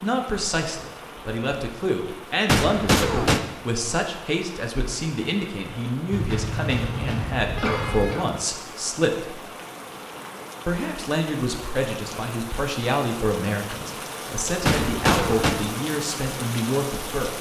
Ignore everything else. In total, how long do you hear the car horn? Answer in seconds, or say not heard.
2 s.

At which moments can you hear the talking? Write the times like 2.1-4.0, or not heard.
0.0-9.4, 10.7-17.3.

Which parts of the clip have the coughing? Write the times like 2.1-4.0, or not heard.
2.5-3.5, 6.3-8.3, 14.7-15.6.